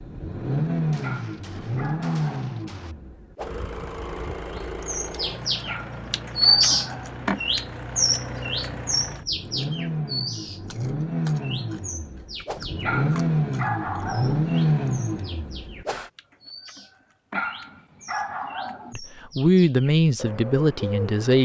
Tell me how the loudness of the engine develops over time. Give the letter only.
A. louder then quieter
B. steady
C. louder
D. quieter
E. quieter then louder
E.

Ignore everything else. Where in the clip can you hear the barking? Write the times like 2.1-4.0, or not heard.
1.0-2.6, 5.7-7.2, 12.8-14.4, 17.3-18.9.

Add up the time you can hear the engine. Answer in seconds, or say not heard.
16 s.